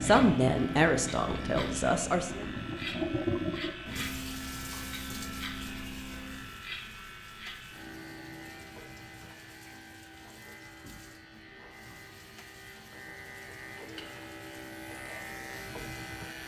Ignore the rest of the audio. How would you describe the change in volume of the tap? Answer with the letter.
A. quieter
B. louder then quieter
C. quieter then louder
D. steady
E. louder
A.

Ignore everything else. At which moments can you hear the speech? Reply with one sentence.
The speech can be heard from 0.0 to 2.5 s.